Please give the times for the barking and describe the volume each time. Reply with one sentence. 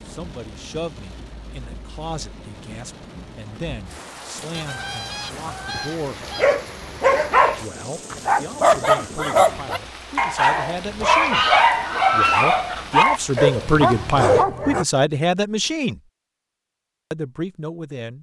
The barking can be heard from 6.2 to 14.8 s, at a steady volume.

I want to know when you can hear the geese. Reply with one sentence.
The geese can be heard from 4.5 to 6.5 s and from 11.1 to 13.1 s.